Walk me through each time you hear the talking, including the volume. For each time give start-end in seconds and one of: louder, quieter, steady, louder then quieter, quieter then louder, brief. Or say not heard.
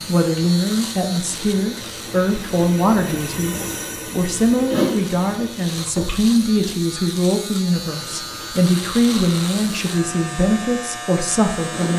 0.1-11.9 steady.